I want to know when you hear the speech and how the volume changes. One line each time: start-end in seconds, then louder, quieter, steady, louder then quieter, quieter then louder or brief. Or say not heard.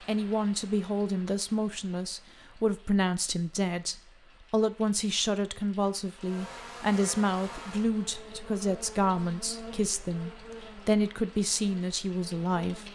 0.1-12.9 steady.